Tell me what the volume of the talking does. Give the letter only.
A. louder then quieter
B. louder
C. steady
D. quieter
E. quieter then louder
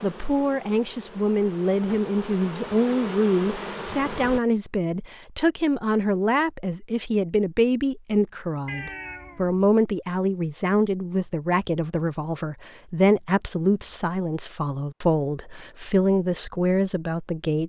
C.